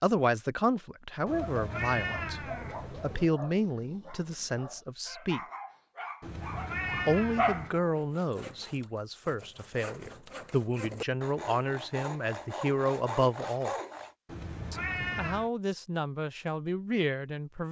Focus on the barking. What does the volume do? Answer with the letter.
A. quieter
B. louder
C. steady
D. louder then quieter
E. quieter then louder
E.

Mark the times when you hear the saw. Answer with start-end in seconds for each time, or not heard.
8.0-14.2.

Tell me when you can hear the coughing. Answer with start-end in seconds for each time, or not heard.
not heard.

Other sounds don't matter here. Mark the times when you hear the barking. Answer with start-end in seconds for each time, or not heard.
1.2-7.7.